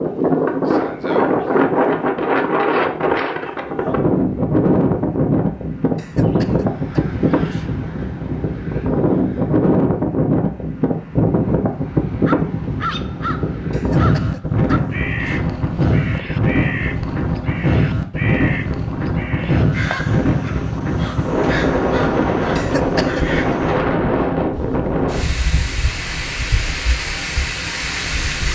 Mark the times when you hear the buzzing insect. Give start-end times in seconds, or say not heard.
not heard.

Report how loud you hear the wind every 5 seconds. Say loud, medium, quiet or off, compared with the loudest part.
loud, loud, loud, loud, loud, medium.